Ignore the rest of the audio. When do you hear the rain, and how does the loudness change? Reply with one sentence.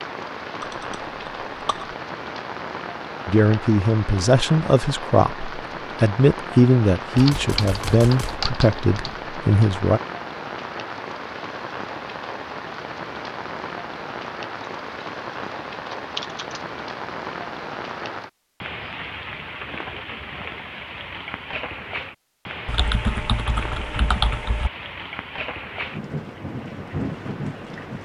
You can hear the rain from 0.0 to 27.9 s, at a steady volume.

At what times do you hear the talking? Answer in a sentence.
The talking can be heard from 3.2 to 10.0 s.